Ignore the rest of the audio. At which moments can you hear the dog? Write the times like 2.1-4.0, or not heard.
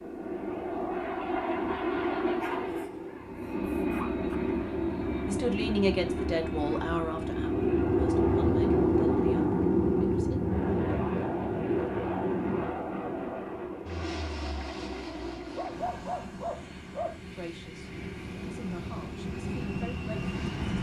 2.4-4.3, 15.3-17.1.